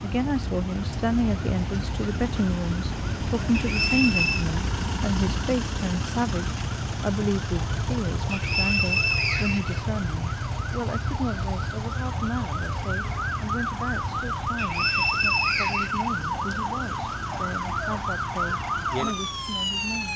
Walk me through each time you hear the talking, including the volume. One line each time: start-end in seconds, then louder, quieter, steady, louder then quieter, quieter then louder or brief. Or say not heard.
0.0-20.1 quieter.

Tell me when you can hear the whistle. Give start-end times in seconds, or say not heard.
3.5-4.5, 8.3-9.8, 14.6-16.6.